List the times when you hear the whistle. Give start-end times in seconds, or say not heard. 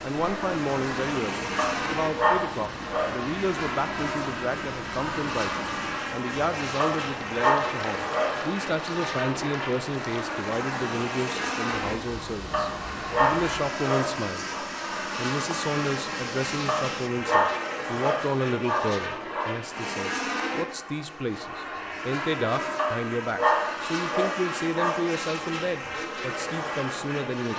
not heard.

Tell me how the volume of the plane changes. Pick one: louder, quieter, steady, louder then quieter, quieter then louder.
steady.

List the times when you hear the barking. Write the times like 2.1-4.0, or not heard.
1.6-3.1, 6.8-8.3, 12.5-14.6, 16.6-19.5, 22.8-25.0.